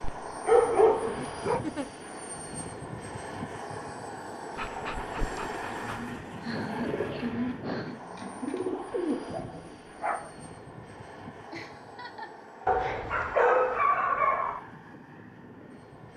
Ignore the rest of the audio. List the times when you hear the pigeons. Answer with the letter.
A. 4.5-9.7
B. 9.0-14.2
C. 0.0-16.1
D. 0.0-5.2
A.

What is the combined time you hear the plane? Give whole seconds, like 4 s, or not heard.
16 s.